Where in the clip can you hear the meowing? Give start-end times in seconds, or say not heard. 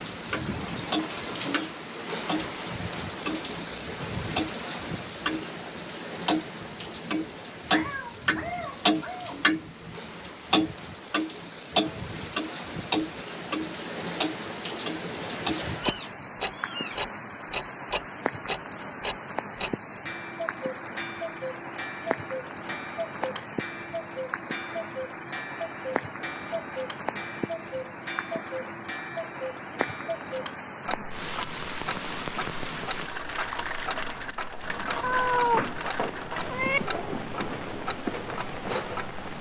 7.7-9.4, 15.8-17.0, 35.0-36.8.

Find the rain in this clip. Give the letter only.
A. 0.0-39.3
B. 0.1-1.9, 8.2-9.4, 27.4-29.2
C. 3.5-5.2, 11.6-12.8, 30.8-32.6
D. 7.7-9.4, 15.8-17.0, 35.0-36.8
A.